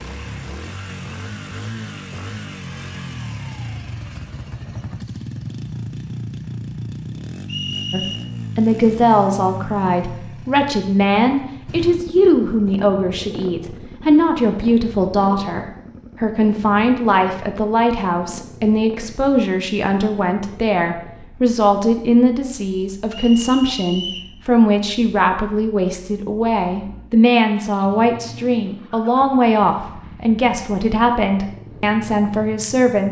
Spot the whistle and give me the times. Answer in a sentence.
You can hear the whistle from 7.5 to 8.2 s and from 23.1 to 24.3 s.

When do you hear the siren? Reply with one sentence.
The siren can't be heard in this clip.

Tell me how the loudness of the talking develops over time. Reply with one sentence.
The volume of the talking stays about the same.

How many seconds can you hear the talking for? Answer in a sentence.
The talking can be heard for 25 seconds in total.